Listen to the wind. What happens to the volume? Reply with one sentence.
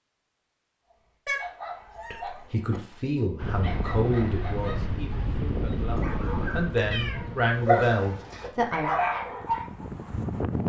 The loudness of the wind goes down, then up.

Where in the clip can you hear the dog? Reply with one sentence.
You can hear the dog from 0.9 to 9.8 s.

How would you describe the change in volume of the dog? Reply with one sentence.
The loudness of the dog goes up.